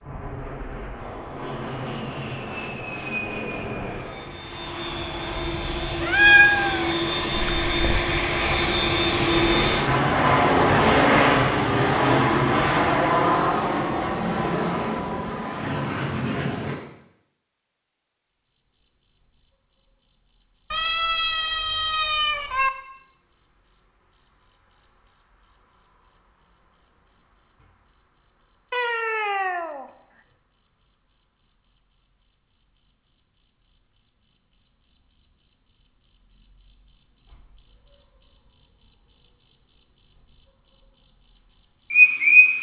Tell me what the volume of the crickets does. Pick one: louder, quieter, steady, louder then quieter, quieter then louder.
louder.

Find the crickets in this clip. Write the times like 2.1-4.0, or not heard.
18.2-42.5.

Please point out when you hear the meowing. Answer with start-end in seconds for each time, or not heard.
6.0-8.0, 20.7-22.7, 28.7-29.9.